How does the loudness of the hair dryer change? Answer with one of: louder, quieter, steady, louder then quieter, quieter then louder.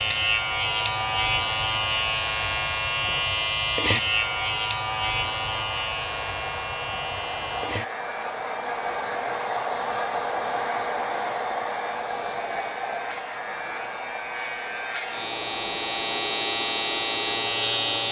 louder then quieter.